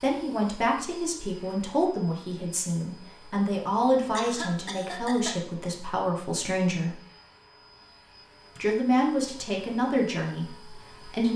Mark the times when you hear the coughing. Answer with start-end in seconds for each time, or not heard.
4.2-5.4.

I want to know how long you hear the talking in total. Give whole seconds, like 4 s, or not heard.
10 s.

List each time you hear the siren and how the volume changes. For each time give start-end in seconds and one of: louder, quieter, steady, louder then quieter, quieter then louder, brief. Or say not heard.
not heard.